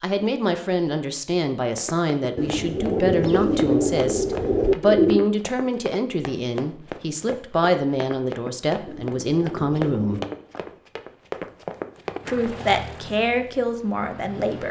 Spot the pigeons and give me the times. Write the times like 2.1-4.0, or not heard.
2.4-5.3, 8.8-10.4.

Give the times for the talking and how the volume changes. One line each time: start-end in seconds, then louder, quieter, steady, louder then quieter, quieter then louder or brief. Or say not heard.
0.0-10.2 steady
12.2-14.6 brief.